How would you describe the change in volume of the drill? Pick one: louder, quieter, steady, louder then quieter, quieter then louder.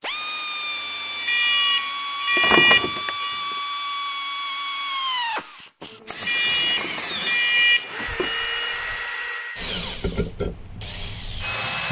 steady.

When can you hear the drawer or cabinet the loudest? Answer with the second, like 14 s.
3 s.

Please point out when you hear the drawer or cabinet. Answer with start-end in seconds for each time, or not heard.
2.4-3.1, 6.6-8.4.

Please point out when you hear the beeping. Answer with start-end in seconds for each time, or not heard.
1.2-3.4, 6.2-8.6.